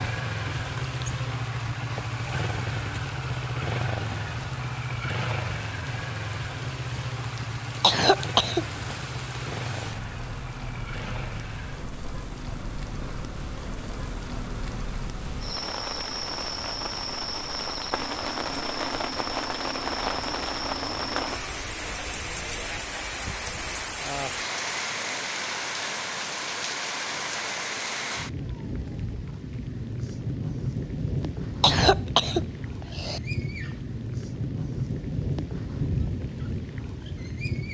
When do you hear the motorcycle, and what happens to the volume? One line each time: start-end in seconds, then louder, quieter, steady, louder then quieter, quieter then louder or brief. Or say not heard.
0.0-22.9 quieter.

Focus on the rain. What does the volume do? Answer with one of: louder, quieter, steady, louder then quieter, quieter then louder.
louder.